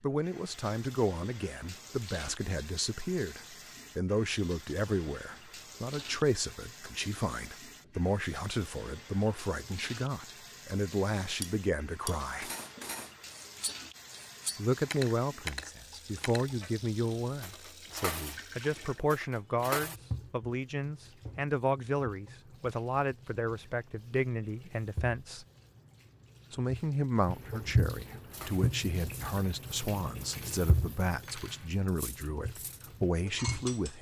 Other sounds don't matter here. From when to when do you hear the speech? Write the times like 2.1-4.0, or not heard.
0.0-12.5, 14.6-25.4, 26.5-33.9.